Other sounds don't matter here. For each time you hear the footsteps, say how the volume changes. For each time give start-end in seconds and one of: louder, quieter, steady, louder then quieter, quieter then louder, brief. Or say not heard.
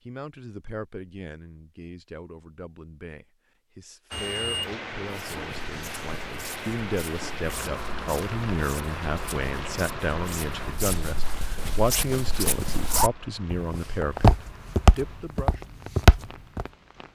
5.0-16.6 louder.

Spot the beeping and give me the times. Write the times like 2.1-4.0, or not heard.
4.1-4.7.